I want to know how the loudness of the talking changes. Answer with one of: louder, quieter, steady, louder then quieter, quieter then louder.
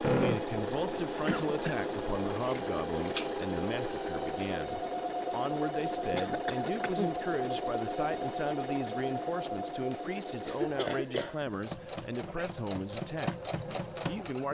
steady.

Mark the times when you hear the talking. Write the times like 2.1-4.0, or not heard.
0.1-14.4.